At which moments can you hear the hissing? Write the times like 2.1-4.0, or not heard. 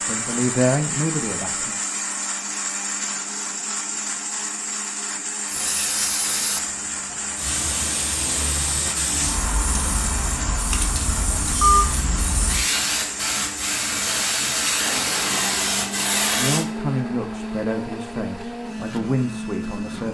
5.5-16.6.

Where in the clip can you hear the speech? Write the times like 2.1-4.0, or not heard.
0.0-1.8, 16.4-20.0.